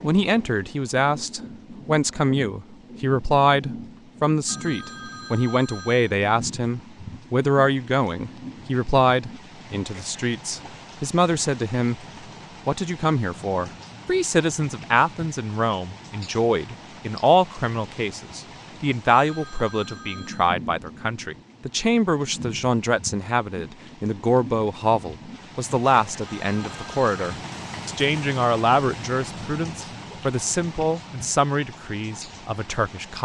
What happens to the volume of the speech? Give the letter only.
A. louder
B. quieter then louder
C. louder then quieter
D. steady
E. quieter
D.